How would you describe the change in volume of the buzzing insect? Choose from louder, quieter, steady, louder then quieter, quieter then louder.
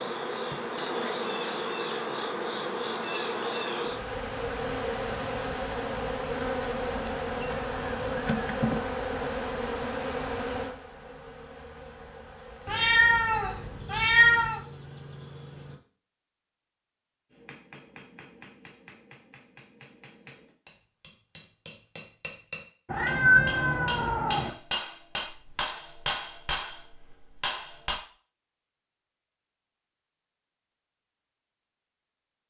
quieter.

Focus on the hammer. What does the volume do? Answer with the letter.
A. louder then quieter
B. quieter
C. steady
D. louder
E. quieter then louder
D.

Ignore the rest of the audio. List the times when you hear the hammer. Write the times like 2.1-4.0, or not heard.
17.3-28.0.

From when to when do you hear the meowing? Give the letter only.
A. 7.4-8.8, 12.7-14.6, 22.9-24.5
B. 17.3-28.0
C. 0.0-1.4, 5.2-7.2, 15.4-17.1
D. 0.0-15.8
A.